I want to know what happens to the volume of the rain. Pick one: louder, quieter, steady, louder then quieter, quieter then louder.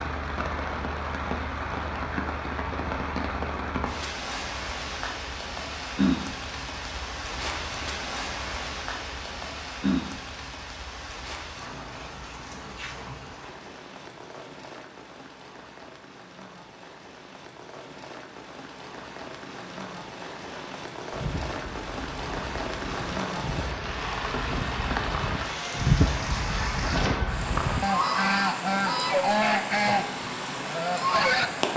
quieter then louder.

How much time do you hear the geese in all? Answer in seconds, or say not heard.
11 s.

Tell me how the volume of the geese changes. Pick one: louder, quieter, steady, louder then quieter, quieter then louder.
louder.